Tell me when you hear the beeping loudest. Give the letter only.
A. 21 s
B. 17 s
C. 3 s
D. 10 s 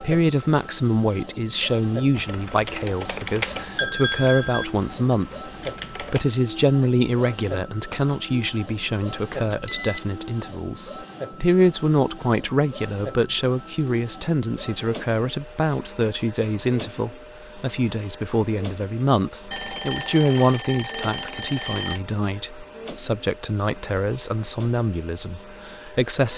D.